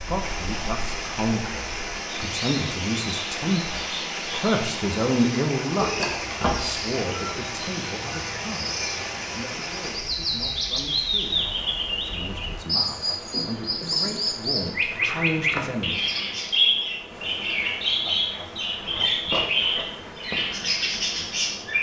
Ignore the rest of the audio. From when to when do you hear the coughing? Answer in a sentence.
The coughing can be heard from 5.8 to 6.8 s.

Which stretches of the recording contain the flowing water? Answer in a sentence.
The flowing water can be heard from 0.0 to 21.7 s.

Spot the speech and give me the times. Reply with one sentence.
You can hear the speech from 0.1 to 16.0 s.